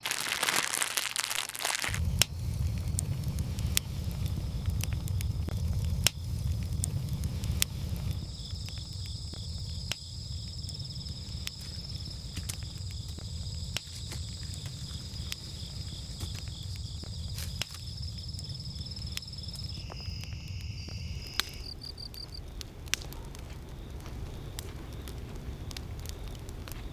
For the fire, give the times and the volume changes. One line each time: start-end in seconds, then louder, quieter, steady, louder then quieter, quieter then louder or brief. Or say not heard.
0.0-26.8 quieter.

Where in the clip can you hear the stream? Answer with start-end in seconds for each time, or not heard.
not heard.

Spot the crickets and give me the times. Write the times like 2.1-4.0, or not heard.
0.0-22.4.